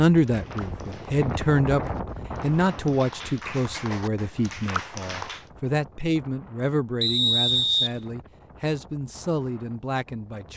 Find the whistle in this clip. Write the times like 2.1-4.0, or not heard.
7.0-7.9.